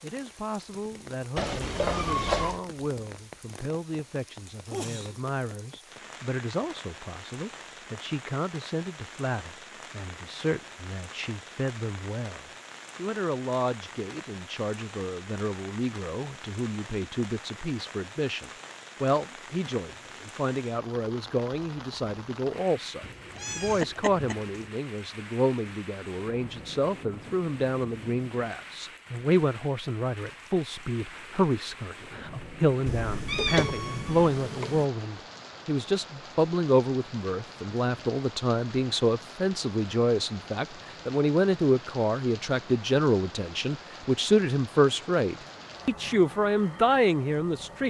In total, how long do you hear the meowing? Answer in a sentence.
You can hear the meowing for 5 seconds altogether.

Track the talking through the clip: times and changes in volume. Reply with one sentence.
The talking can be heard from 0.0 to 47.8 s, getting louder.